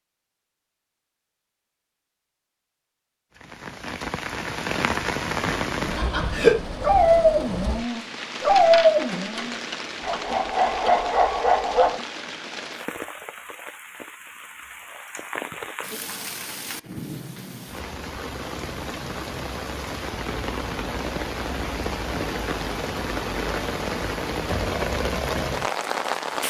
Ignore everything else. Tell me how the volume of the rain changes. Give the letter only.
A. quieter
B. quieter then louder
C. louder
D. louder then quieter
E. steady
B.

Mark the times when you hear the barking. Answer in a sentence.
The barking can be heard from 6.0 to 12.0 s.